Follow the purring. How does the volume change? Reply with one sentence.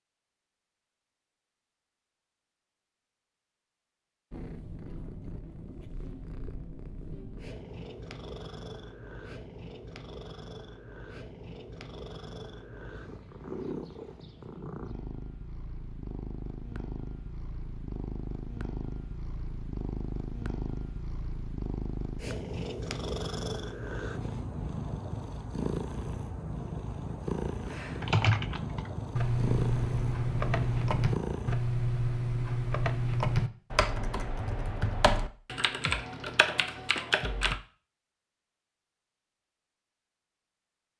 The loudness of the purring goes up.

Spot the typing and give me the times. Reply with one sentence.
The typing can be heard from 27.9 to 37.6 s.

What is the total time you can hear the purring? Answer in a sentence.
You can hear the purring for 27 seconds altogether.